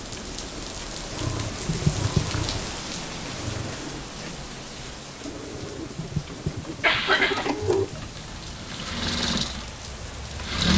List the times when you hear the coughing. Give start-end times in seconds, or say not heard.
1.6-2.4, 5.9-7.5.